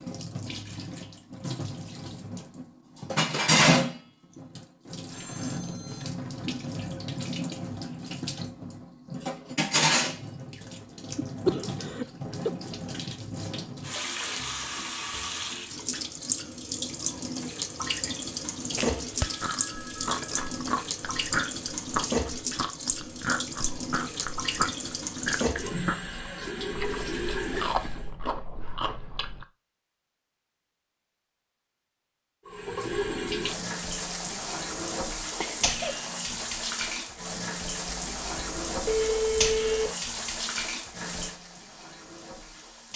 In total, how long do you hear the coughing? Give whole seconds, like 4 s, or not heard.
3 s.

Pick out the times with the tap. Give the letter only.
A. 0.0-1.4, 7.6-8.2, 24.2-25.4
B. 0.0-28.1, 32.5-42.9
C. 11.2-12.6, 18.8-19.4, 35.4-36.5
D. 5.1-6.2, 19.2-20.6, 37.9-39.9
B.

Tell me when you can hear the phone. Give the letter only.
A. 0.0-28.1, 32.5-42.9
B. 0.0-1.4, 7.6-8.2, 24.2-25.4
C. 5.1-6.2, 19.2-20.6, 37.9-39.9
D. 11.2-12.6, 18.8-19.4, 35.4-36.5
C.